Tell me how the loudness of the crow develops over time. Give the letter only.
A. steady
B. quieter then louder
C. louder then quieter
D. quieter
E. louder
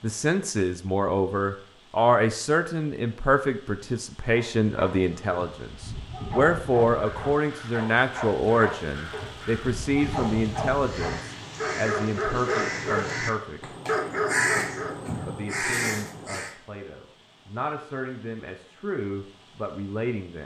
E.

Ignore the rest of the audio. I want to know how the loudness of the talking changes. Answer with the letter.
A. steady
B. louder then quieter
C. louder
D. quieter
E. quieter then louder
D.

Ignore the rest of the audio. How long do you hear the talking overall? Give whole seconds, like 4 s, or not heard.
19 s.